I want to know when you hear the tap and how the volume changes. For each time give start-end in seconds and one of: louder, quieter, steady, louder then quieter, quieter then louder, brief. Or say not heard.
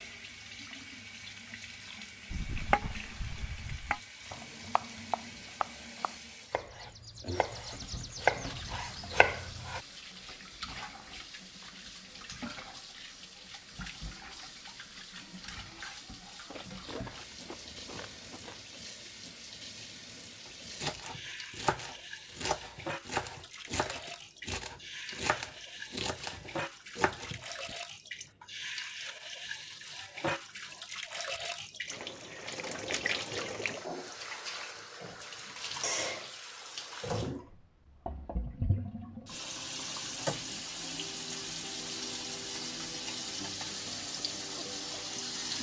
0.0-45.5 louder.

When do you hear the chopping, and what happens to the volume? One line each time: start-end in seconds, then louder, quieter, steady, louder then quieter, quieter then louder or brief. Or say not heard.
2.3-9.8 quieter then louder
20.4-27.8 steady.